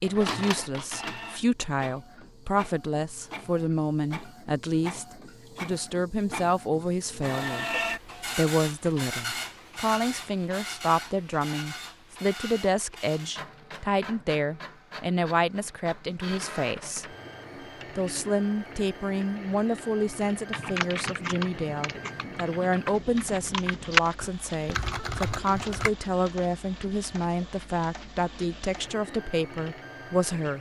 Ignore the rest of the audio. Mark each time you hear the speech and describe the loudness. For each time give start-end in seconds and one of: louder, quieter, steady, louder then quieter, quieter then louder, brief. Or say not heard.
0.0-17.1 steady
17.9-30.5 steady.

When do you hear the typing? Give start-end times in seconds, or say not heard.
20.5-25.9.